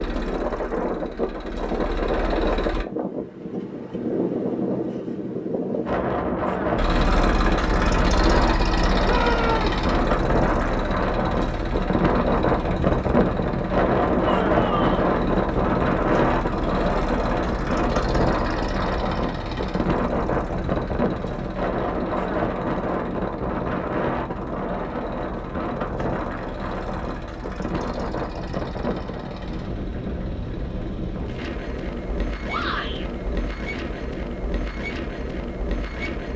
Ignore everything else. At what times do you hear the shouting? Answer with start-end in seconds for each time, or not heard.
9.0-9.8, 14.2-15.1, 32.5-33.0.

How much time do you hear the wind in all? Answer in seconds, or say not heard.
36 s.